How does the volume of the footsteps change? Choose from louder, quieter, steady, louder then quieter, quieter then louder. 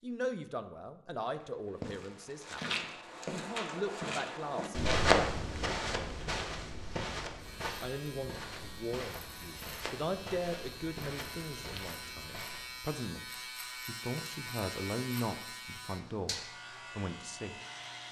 louder then quieter.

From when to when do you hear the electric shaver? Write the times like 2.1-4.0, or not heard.
7.3-18.0.